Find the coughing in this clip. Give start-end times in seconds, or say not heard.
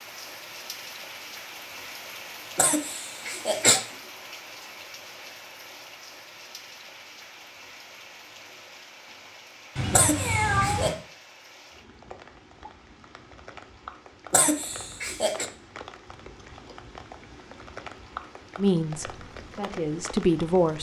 2.5-3.8, 9.9-10.9, 14.3-15.4.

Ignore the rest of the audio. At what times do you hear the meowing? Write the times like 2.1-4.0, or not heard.
9.8-10.9.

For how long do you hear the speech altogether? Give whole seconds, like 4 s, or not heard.
2 s.